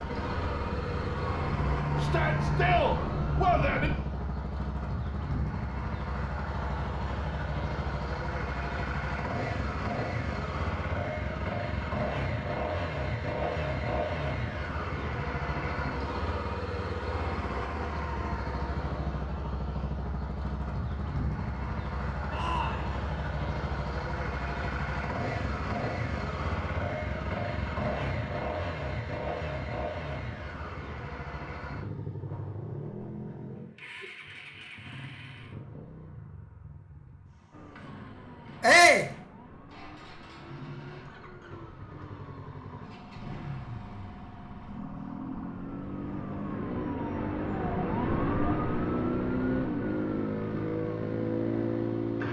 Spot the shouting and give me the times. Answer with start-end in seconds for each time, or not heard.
2.0-3.9, 22.3-22.9, 38.6-39.1.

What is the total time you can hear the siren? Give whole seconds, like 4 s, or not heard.
19 s.